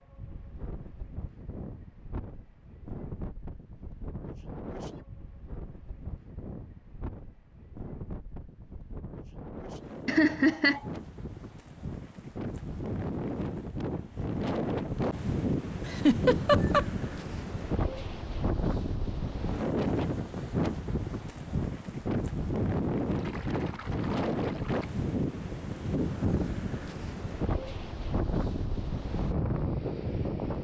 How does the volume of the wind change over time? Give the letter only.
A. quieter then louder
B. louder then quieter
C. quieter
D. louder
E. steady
D.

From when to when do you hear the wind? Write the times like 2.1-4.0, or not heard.
0.0-30.5.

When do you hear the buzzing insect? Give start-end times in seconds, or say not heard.
not heard.